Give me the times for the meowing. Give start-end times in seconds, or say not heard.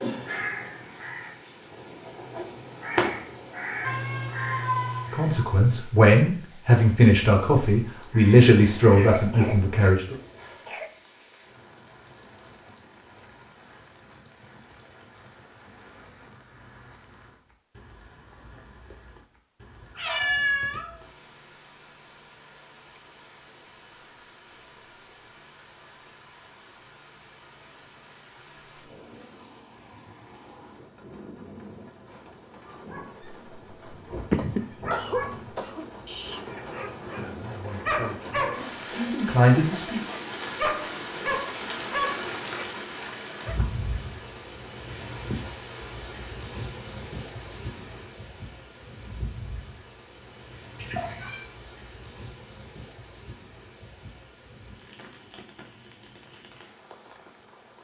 3.8-5.3, 19.8-21.0, 50.8-51.5.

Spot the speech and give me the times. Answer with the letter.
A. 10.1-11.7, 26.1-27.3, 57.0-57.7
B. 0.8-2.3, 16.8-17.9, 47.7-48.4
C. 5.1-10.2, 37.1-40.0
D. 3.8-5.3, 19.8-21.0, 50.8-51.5
C.